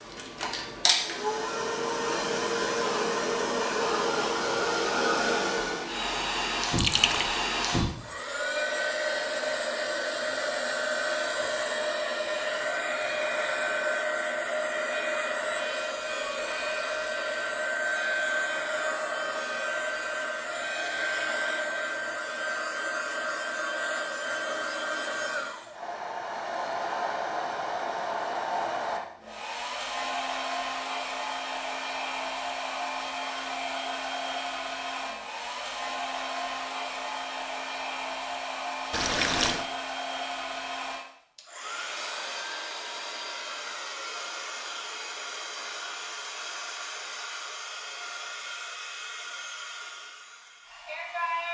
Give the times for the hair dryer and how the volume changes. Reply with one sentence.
The hair dryer can be heard from 0.0 to 51.4 s, getting quieter.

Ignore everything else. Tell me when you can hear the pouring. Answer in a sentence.
The pouring can be heard from 6.8 to 7.4 s and from 38.9 to 39.6 s.